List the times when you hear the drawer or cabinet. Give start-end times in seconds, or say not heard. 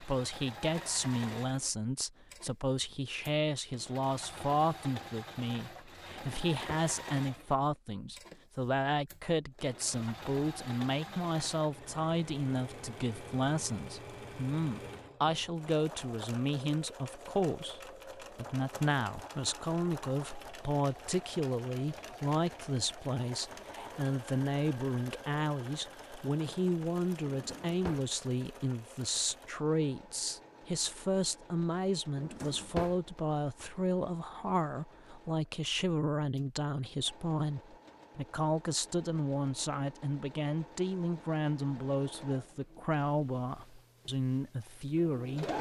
6.1-6.9, 27.2-28.1, 32.1-33.0.